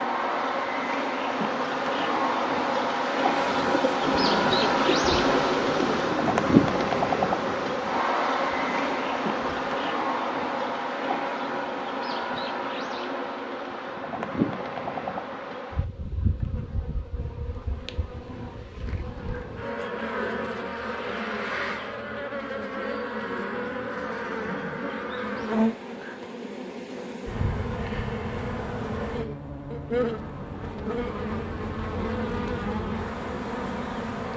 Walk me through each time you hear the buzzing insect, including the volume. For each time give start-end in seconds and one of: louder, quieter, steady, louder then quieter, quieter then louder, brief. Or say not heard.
0.0-34.3 quieter.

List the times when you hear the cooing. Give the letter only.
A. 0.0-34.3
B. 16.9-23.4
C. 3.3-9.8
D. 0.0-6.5
C.